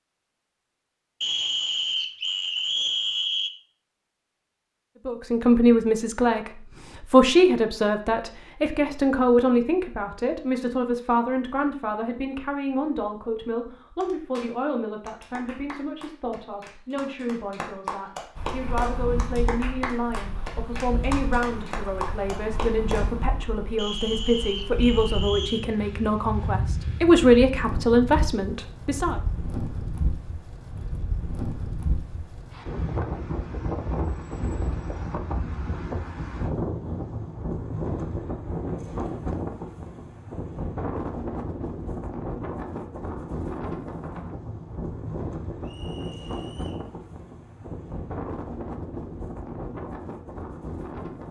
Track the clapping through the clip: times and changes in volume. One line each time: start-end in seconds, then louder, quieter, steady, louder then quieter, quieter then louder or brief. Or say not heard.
14.0-23.1 louder.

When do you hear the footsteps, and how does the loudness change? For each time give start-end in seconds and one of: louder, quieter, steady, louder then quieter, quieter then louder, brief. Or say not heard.
not heard.